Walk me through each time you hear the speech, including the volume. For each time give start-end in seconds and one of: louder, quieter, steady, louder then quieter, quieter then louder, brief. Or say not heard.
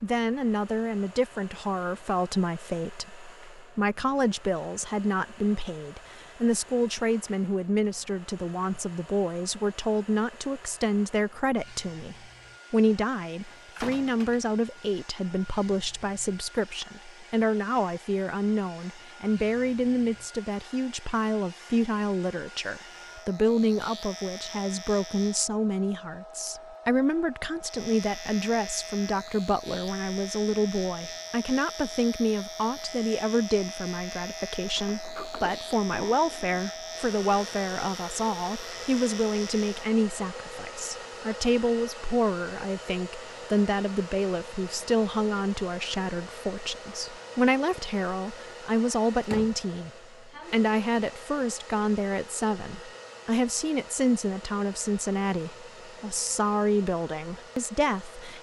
0.0-58.3 steady.